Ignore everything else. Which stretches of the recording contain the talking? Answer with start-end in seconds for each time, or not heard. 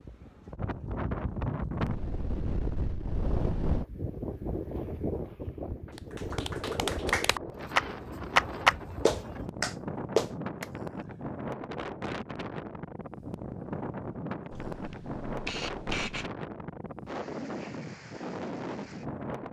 not heard.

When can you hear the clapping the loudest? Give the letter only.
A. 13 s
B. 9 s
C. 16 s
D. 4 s
B.